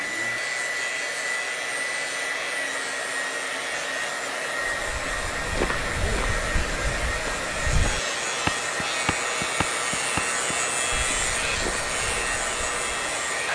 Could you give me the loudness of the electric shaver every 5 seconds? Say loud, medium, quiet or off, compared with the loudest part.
medium, loud, loud.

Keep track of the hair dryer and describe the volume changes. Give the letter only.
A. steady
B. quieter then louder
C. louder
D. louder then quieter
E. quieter
A.